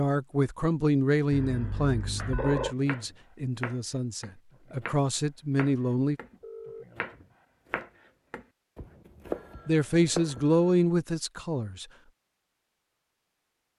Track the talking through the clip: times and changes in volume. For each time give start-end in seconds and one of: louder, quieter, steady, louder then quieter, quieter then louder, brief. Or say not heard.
0.0-6.2 quieter then louder
9.7-11.8 brief.